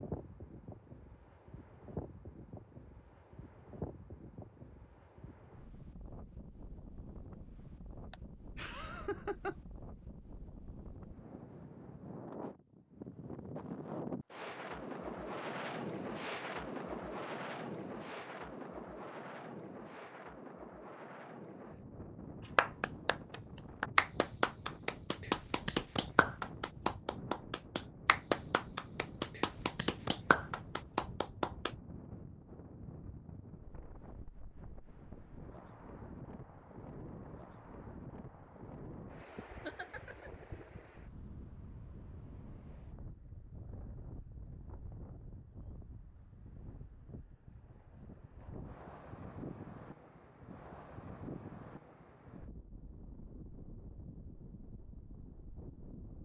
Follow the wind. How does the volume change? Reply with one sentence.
The loudness of the wind goes up, then down.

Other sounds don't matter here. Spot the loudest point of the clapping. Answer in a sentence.
The volume of the clapping peaks at 24 seconds.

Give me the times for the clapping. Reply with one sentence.
You can hear the clapping from 22.4 to 31.7 s.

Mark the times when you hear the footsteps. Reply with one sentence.
The footsteps can't be heard in this clip.